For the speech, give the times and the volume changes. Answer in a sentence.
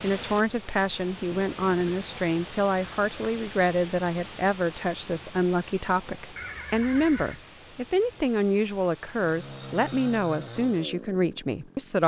The speech can be heard from 0.0 to 12.0 s, at a steady volume.